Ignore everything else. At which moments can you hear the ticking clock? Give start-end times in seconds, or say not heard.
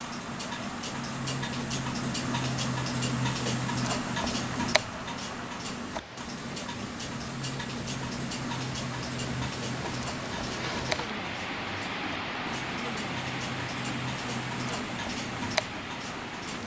0.0-16.6.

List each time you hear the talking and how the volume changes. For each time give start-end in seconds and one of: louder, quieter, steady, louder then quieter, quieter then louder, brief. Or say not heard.
not heard.